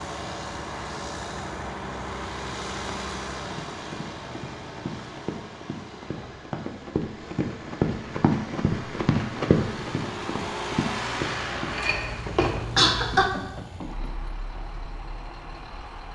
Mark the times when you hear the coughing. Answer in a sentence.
The coughing can be heard from 11.7 to 13.3 s.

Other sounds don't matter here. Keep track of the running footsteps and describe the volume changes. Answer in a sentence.
The volume of the running footsteps goes up, then down.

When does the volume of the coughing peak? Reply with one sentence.
The volume of the coughing peaks at 13 seconds.